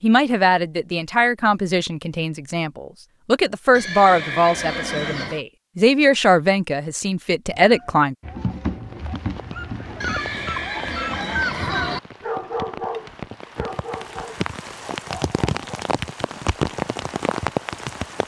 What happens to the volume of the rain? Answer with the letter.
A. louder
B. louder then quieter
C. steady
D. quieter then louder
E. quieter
A.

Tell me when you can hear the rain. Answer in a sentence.
You can hear the rain from 8.8 to 18.2 s.